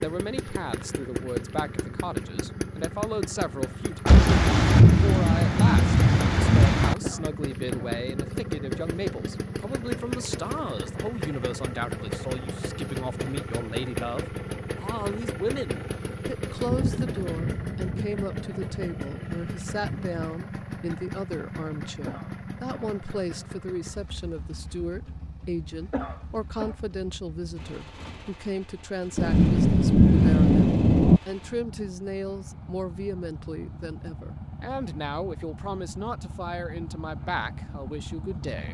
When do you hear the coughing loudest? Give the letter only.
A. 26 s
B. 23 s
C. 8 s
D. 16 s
A.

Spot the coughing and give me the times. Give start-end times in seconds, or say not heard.
7.0-8.0, 22.1-23.0, 25.9-26.8.